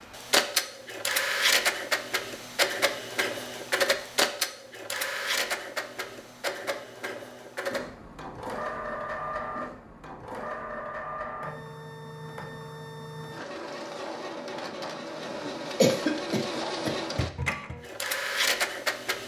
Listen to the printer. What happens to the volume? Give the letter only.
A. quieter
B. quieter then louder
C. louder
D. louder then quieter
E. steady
B.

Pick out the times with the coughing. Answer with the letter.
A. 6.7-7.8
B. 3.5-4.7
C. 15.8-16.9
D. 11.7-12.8
C.